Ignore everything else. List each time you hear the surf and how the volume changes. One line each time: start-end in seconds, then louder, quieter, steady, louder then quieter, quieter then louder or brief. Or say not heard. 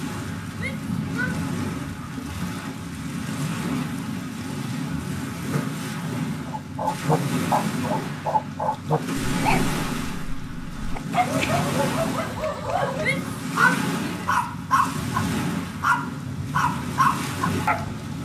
0.0-18.2 steady.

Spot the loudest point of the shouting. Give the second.
14 s.